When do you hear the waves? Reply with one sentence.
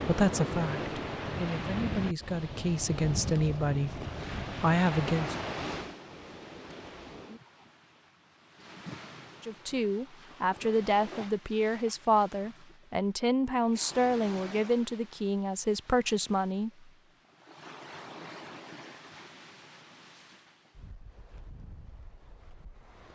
The waves can be heard from 0.0 to 23.1 s.